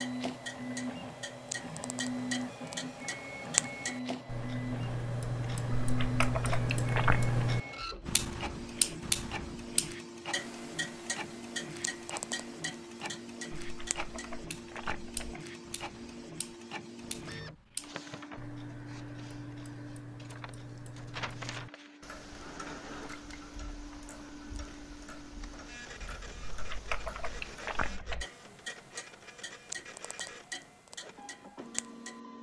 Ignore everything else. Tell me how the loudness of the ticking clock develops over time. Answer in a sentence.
The loudness of the ticking clock goes down.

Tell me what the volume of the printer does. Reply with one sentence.
The volume of the printer goes down.